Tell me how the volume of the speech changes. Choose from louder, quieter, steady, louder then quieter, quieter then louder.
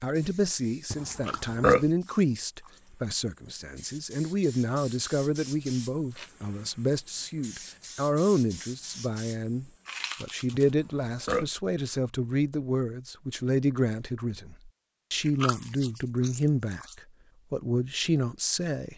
steady.